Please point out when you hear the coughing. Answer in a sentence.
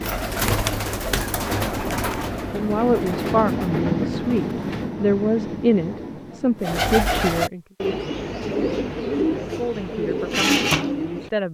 The coughing can't be heard in this clip.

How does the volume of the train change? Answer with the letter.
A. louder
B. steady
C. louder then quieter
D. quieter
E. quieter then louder
C.